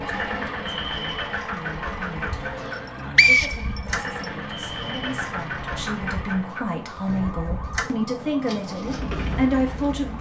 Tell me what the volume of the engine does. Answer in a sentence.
The loudness of the engine stays about the same.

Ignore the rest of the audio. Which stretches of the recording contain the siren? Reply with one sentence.
The siren can be heard from 0.0 to 10.1 s.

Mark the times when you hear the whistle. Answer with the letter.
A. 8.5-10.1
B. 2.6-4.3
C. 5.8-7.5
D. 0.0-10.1
B.